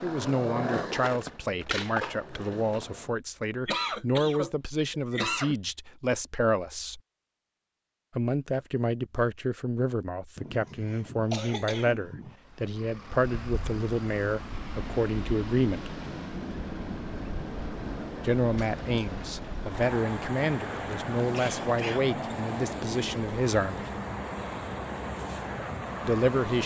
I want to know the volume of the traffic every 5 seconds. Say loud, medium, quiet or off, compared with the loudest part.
off, off, medium, loud, loud, loud.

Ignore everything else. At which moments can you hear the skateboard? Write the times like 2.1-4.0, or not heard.
0.0-3.1.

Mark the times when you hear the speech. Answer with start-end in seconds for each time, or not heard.
0.0-7.0, 8.2-15.9, 18.2-23.9, 26.0-26.6.